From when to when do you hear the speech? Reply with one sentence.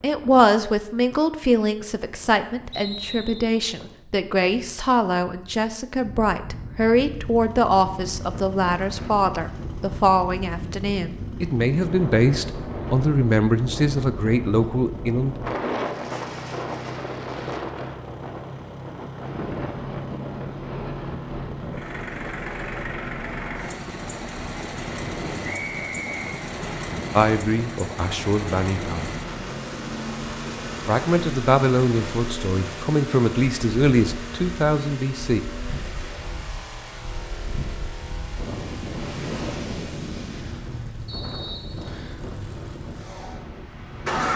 The speech can be heard from 0.0 to 15.3 s, from 27.1 to 29.1 s and from 30.9 to 35.4 s.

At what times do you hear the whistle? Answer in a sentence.
You can hear the whistle from 2.7 to 3.5 s, from 25.4 to 26.4 s and from 41.0 to 42.2 s.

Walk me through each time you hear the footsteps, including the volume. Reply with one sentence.
The footsteps can't be heard in this clip.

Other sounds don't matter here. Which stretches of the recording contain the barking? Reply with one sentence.
The barking can't be heard in this clip.